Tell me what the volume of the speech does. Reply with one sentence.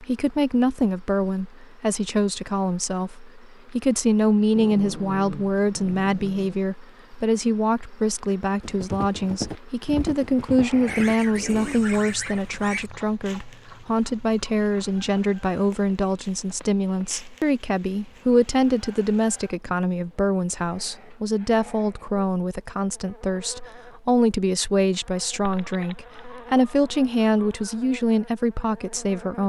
The loudness of the speech stays about the same.